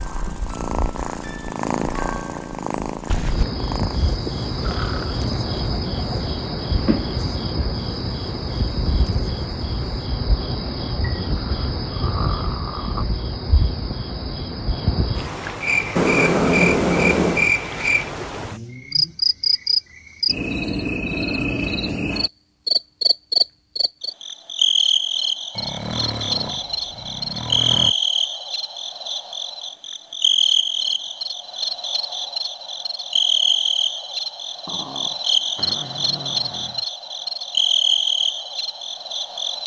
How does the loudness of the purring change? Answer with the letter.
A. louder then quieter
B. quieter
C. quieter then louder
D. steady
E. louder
B.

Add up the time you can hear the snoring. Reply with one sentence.
You can hear the snoring for 9 seconds altogether.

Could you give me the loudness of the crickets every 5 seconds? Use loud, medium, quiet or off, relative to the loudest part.
medium, medium, medium, loud, loud, loud, loud, loud.